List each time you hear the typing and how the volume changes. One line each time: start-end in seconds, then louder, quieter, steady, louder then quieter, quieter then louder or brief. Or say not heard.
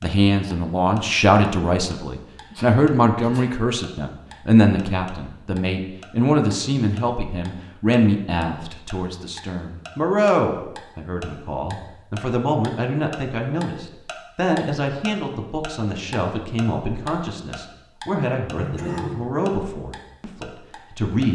not heard.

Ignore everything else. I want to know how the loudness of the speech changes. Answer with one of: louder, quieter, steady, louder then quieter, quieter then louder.
quieter.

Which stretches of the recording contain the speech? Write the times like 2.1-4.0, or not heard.
0.0-21.2.